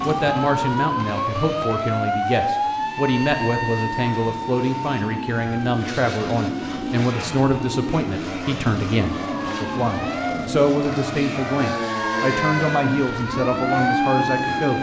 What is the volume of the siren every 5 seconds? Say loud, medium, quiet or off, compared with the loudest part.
loud, medium, loud.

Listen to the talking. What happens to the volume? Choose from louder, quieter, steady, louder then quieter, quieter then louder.
steady.